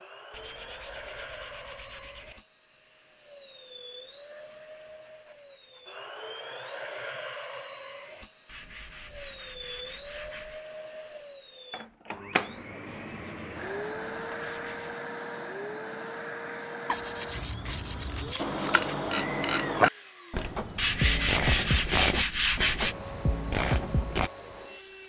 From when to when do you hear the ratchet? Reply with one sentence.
The ratchet can be heard from 17.3 to 24.3 s.